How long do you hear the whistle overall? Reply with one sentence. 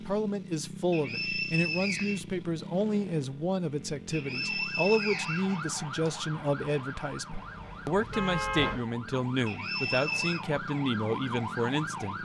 You can hear the whistle for 4 seconds altogether.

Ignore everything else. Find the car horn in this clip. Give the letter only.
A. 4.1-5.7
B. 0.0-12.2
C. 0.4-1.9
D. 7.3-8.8
D.